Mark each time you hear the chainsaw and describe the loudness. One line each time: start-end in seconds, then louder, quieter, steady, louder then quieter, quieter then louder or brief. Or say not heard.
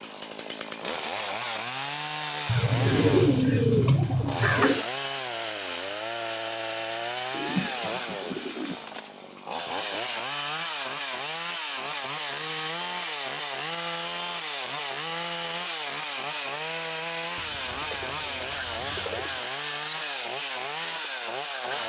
0.0-21.8 steady.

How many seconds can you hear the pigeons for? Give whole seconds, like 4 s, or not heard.
6 s.